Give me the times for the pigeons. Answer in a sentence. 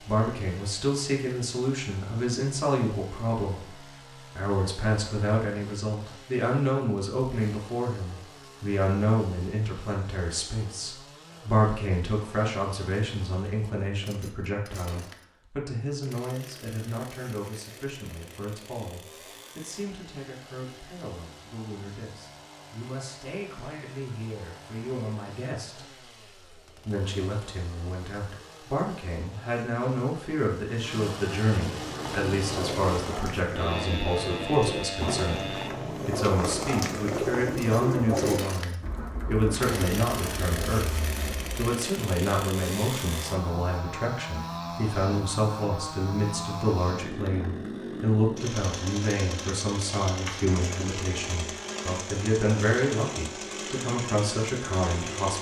You can hear the pigeons from 31.6 to 41.7 s.